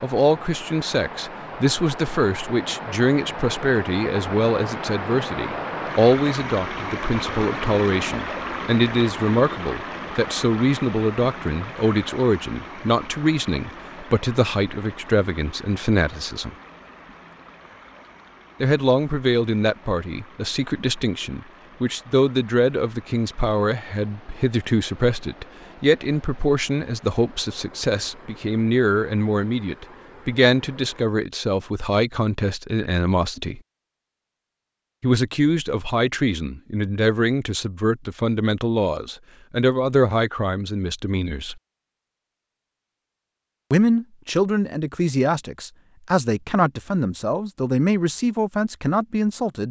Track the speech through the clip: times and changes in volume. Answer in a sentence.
You can hear the speech from 0.0 to 16.6 s, at a steady volume; from 18.6 to 33.6 s, at a steady volume; from 35.0 to 41.5 s, at a steady volume; and from 43.7 to 49.6 s, at a steady volume.